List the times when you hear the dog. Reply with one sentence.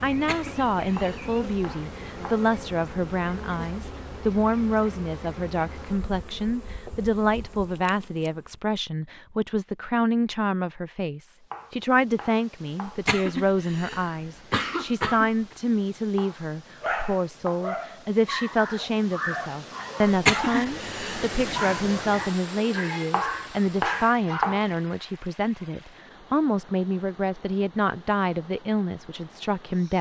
You can hear the dog from 16.8 to 24.5 s.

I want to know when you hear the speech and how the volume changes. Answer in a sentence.
The speech can be heard from 0.0 to 29.9 s, at a steady volume.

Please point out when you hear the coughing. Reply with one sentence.
You can hear the coughing from 0.1 to 1.2 s, from 12.8 to 15.6 s and from 20.1 to 21.3 s.